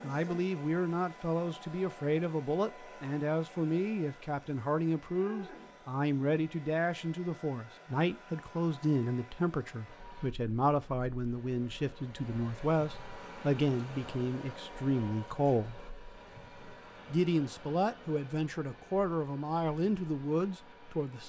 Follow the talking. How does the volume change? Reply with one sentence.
The loudness of the talking stays about the same.